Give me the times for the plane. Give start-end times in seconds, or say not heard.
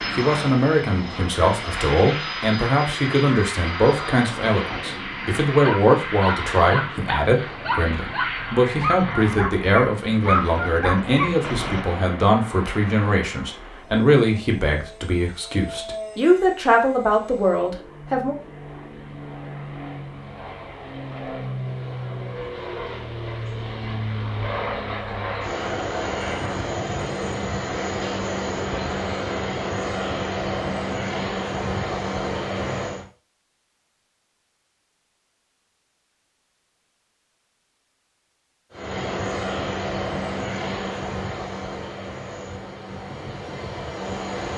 0.0-33.0, 38.7-44.5.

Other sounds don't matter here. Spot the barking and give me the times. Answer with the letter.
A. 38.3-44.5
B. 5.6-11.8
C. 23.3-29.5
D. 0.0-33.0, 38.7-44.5
B.